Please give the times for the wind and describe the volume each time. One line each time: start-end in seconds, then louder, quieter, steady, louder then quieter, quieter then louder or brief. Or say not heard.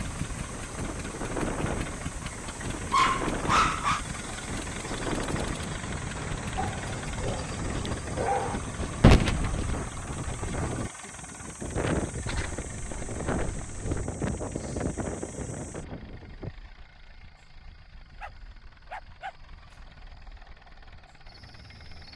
0.0-16.5 steady.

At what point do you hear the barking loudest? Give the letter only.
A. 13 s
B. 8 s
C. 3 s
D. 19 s
C.